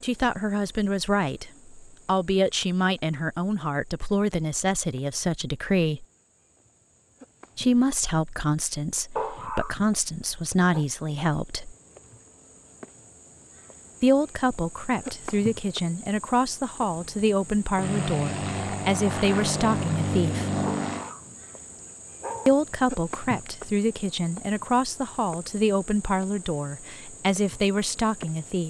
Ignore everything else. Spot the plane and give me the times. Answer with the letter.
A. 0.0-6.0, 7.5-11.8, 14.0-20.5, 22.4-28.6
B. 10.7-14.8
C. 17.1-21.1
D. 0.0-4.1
C.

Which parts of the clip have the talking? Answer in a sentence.
The talking can be heard from 0.0 to 6.0 s, from 7.5 to 11.8 s, from 14.0 to 20.5 s and from 22.4 to 28.6 s.